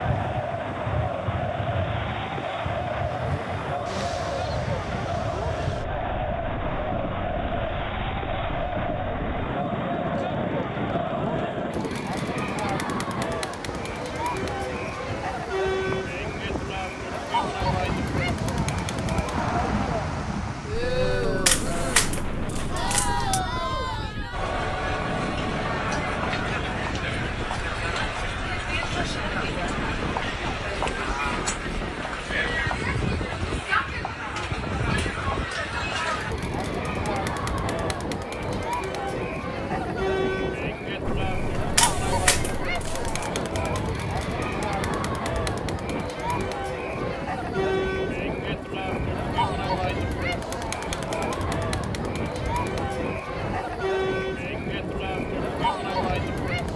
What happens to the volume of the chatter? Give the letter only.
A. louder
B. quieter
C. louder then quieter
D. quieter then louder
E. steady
E.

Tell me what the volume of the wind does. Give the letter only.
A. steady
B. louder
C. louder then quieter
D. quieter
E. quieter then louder
A.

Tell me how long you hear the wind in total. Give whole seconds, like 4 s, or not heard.
57 s.